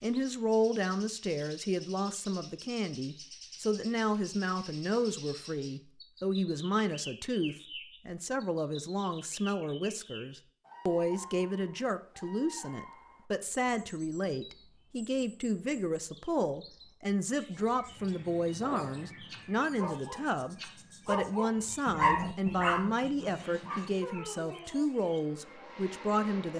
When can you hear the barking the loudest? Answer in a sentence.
The volume of the barking peaks at 22 seconds.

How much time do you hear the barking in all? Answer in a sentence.
The barking can be heard for 7 seconds in total.